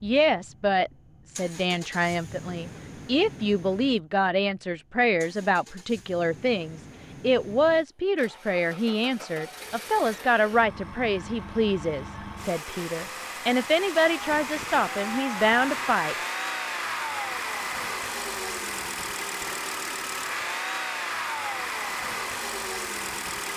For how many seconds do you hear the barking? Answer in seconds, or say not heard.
not heard.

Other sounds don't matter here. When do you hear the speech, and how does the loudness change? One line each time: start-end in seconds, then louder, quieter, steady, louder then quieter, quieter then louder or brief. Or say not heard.
0.0-16.1 steady.